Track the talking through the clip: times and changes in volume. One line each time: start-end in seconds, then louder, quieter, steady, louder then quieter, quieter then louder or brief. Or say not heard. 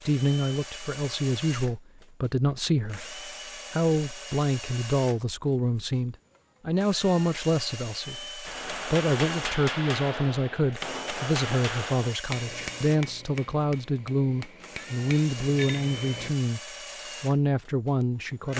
0.1-16.6 steady
17.2-18.5 brief.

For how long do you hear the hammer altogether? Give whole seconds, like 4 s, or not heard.
8 s.